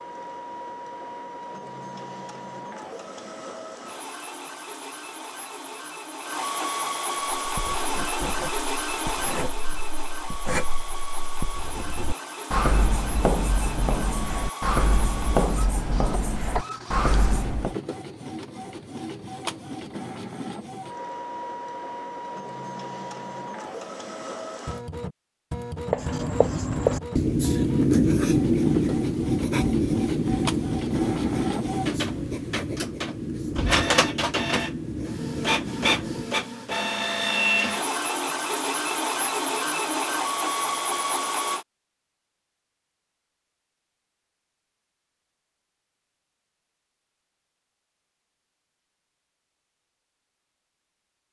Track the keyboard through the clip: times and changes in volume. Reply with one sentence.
You can't hear the keyboard here.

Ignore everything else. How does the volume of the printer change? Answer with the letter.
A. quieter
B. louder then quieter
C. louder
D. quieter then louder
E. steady
C.